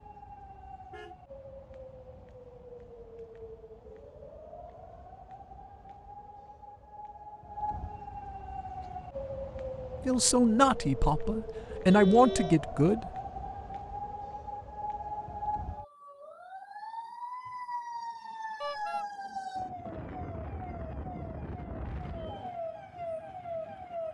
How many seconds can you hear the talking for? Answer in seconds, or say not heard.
3 s.